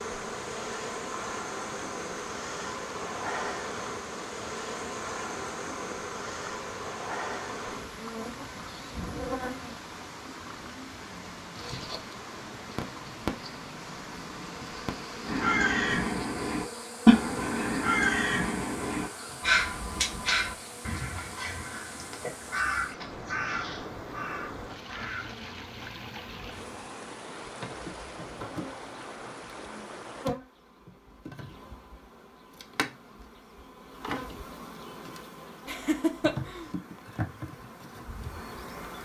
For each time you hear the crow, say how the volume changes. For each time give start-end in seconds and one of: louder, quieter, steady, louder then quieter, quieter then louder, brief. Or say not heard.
15.2-25.3 quieter.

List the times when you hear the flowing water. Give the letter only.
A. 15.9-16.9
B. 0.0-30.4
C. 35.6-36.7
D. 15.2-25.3
B.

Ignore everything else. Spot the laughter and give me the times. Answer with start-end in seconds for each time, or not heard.
35.6-36.7.